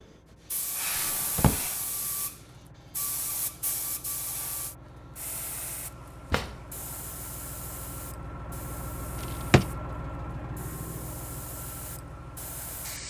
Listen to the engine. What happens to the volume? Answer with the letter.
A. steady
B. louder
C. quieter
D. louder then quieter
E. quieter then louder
B.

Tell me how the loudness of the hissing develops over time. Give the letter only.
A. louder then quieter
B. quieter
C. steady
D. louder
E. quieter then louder
B.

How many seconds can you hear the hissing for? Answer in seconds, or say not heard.
13 s.